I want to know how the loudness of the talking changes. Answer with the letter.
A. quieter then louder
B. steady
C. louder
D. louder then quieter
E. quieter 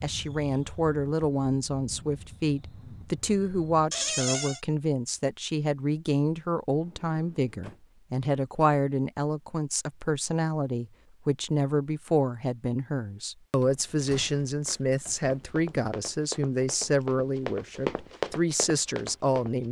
B.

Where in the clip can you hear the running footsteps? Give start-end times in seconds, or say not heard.
15.2-19.6.